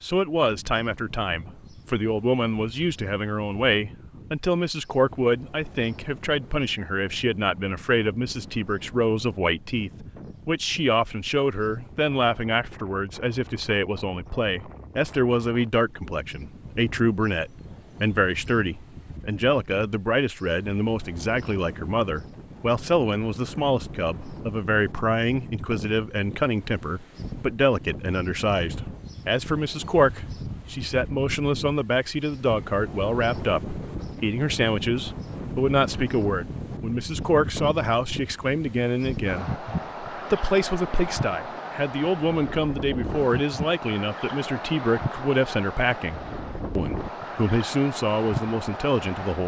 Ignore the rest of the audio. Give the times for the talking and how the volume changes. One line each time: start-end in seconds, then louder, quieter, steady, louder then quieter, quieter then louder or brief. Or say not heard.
0.0-49.4 steady.